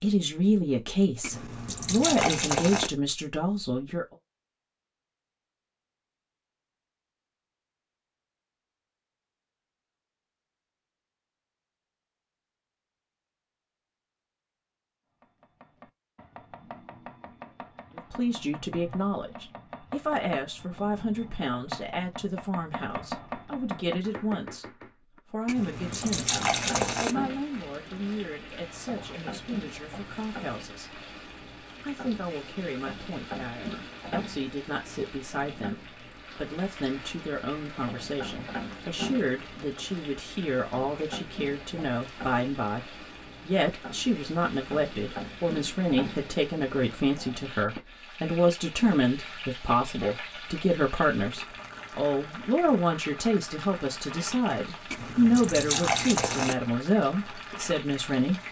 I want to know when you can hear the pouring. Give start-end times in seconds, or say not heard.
1.2-2.9, 25.4-27.1, 54.9-56.5.